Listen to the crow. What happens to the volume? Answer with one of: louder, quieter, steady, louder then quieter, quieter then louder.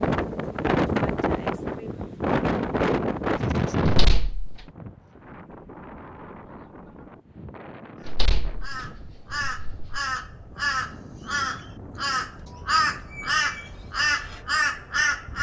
louder.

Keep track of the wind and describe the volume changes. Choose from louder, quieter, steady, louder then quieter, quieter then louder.
quieter.